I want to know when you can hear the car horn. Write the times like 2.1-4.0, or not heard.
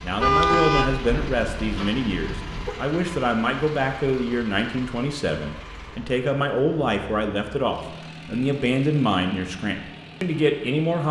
0.2-2.8.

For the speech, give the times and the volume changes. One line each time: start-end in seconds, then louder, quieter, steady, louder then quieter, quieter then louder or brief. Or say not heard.
0.0-11.0 steady.